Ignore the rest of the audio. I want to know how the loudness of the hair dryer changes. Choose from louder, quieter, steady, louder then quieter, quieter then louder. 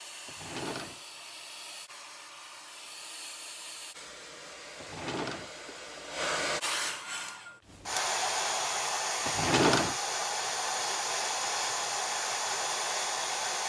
louder.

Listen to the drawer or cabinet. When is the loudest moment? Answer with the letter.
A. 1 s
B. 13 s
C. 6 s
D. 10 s
D.